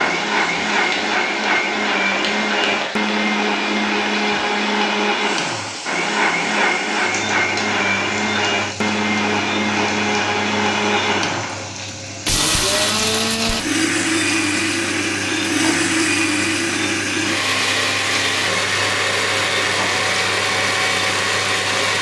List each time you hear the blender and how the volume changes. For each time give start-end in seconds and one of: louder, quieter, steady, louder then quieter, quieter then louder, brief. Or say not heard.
0.0-21.9 steady.